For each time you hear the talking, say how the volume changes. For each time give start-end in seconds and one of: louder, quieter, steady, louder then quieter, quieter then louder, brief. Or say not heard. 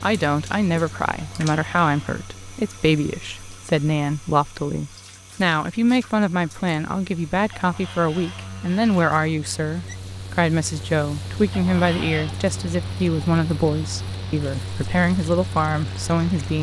0.0-16.5 steady.